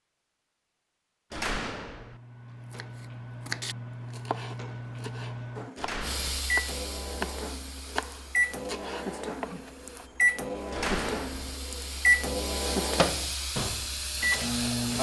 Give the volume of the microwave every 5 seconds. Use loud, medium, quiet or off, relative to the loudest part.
quiet, medium, loud.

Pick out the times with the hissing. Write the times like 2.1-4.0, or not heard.
6.0-14.9.